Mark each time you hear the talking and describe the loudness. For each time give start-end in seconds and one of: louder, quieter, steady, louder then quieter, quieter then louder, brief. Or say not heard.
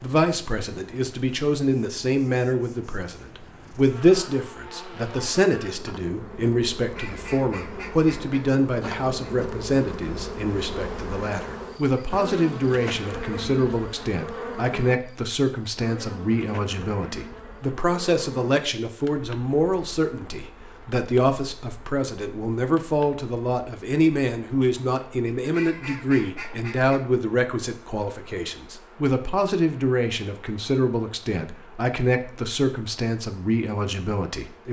0.0-34.6 steady.